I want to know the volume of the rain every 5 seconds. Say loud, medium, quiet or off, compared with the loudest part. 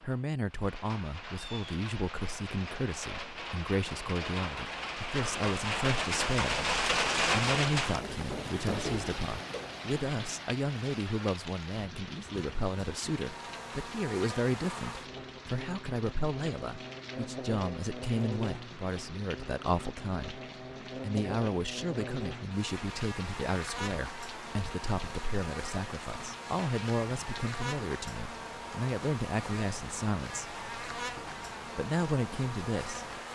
medium, loud, quiet, quiet, quiet, quiet, quiet.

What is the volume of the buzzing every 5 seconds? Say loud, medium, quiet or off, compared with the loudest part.
off, off, loud, loud, loud, loud, loud.